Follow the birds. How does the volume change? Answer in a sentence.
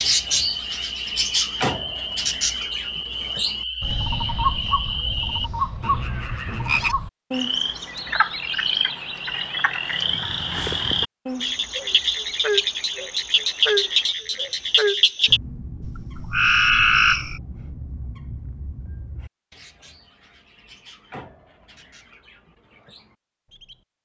The loudness of the birds goes down.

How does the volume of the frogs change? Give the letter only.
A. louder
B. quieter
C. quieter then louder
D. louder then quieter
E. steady
A.